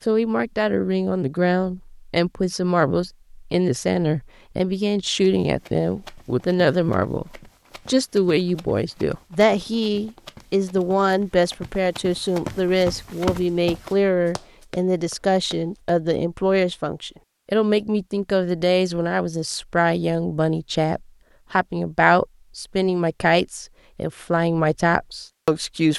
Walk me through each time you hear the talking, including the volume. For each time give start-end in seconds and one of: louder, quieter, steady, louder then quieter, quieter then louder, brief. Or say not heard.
0.1-25.9 steady.